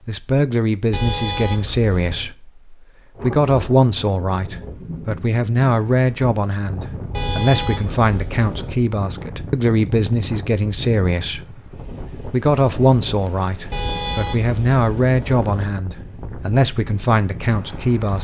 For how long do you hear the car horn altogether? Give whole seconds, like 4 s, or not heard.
5 s.